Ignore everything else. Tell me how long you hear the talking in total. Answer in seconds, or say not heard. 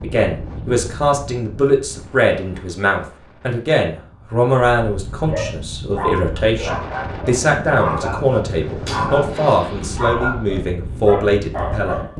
12 s.